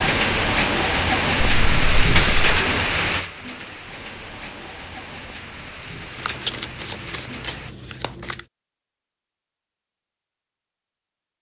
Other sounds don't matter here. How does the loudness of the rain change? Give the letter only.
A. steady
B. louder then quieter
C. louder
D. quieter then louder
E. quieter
E.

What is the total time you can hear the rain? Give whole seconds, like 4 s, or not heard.
8 s.